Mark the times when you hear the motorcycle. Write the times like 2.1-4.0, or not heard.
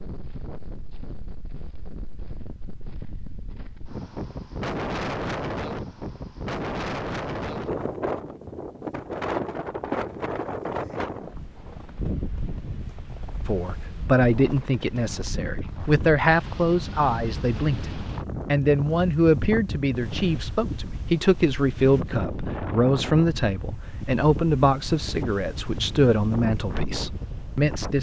not heard.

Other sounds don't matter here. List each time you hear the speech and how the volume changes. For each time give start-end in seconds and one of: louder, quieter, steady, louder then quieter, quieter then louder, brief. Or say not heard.
13.4-27.9 steady.